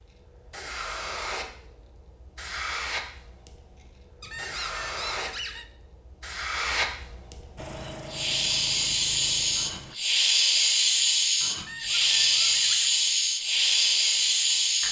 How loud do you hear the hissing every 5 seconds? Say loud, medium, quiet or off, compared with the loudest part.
quiet, medium, loud.